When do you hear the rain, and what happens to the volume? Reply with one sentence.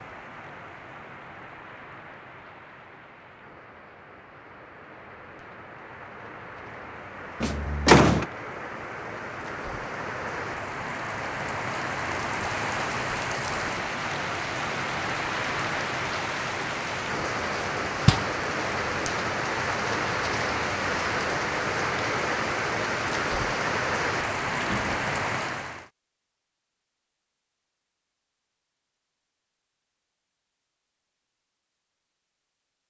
The rain can be heard from 0.0 to 25.9 s, getting louder.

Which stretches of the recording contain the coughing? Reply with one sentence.
You can't hear the coughing here.